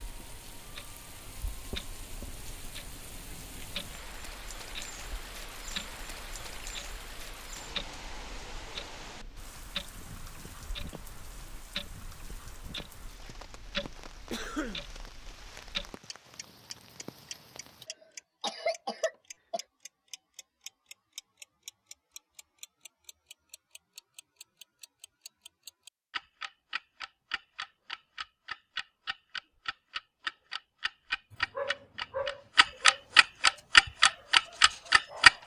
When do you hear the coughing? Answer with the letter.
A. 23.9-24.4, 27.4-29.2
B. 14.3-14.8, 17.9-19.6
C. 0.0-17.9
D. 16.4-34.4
B.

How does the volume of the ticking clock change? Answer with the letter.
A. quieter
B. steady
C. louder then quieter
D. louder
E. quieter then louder
D.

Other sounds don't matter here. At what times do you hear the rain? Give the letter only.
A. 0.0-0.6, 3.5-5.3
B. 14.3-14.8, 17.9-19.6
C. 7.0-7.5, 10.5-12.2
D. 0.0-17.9
D.